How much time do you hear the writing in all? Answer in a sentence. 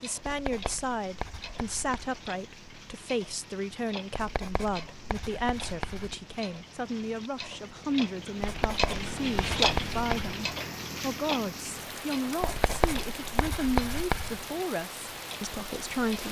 The writing can be heard for 8 seconds in total.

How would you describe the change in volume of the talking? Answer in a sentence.
The volume of the talking stays about the same.